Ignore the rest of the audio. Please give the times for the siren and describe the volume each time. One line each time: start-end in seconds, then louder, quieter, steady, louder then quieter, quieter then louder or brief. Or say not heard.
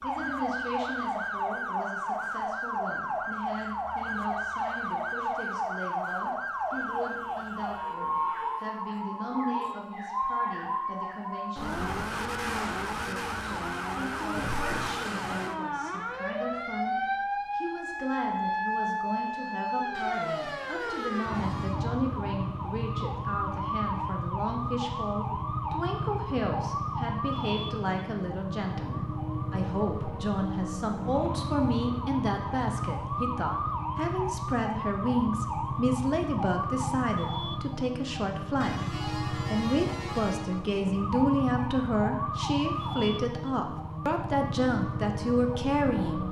0.0-46.2 steady.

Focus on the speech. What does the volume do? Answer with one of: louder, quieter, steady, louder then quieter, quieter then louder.
louder.